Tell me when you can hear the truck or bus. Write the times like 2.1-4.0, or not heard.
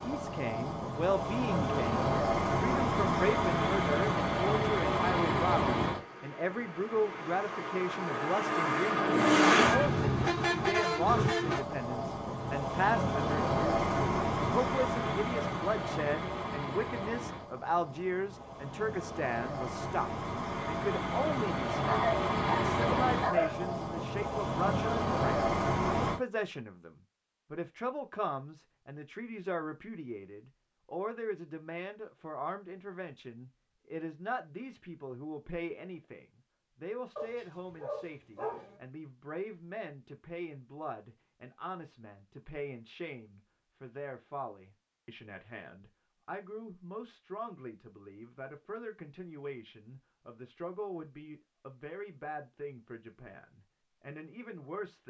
0.0-26.2.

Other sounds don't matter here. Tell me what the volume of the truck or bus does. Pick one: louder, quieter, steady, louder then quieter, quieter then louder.
quieter then louder.